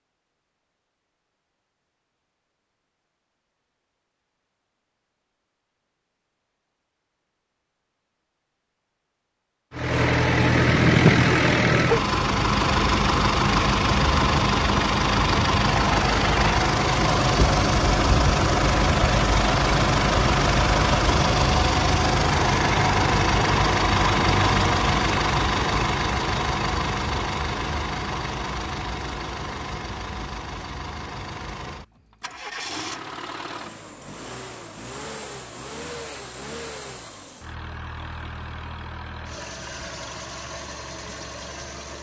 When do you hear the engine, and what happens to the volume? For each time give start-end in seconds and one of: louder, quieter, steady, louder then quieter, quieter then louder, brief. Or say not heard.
9.7-41.9 quieter.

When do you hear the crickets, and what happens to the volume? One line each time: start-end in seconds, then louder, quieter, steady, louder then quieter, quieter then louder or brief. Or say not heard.
not heard.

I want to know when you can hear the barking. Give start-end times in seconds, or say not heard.
10.4-12.0.